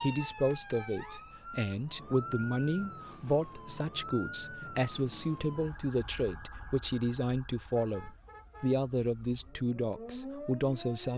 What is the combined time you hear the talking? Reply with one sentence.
You can hear the talking for 11 seconds altogether.